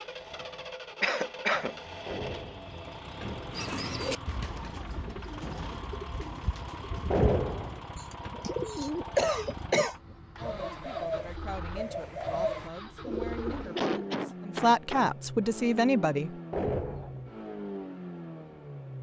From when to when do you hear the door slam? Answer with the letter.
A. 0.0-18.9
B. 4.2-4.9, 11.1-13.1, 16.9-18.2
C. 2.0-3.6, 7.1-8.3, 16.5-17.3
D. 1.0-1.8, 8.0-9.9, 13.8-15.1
C.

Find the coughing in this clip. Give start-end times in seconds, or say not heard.
1.0-1.8, 8.0-9.9, 13.8-15.1.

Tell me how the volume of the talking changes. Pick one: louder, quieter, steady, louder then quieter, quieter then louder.
louder.